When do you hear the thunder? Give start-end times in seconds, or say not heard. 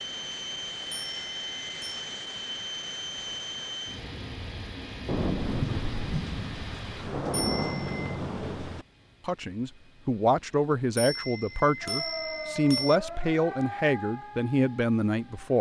5.0-8.8.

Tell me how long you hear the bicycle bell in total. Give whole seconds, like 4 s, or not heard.
4 s.